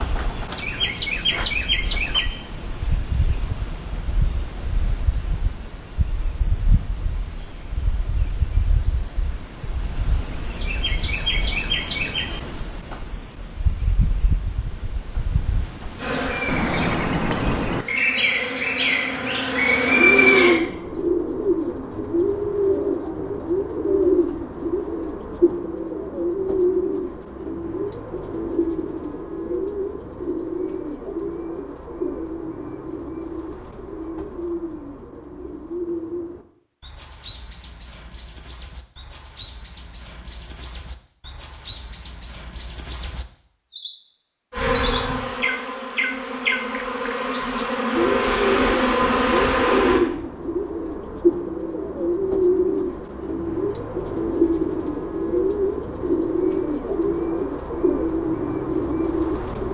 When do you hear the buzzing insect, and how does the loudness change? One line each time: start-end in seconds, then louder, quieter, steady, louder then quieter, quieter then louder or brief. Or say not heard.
15.9-20.6 quieter then louder
44.5-50.0 louder.